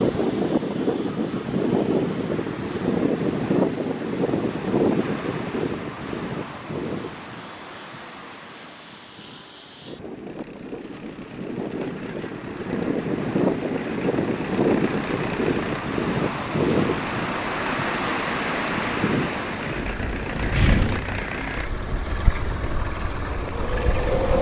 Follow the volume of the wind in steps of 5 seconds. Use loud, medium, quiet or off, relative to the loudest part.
loud, medium, loud, loud, medium.